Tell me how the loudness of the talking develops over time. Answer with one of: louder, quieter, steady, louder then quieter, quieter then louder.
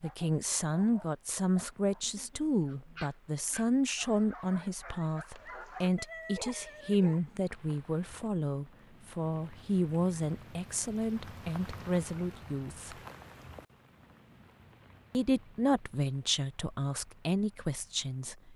steady.